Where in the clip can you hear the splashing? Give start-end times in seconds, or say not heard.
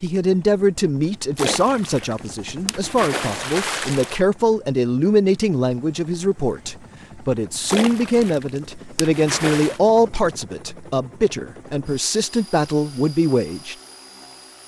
1.4-4.2, 7.7-9.8.